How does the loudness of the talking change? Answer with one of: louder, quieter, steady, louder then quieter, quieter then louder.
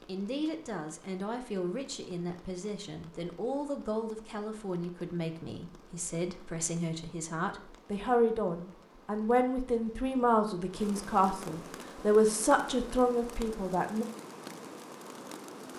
louder.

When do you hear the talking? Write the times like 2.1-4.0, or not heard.
0.1-14.1.